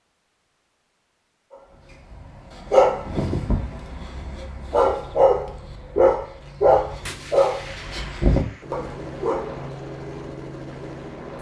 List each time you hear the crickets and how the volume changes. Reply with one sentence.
The crickets can't be heard in this clip.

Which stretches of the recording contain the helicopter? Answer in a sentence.
The helicopter can be heard from 8.6 to 11.3 s.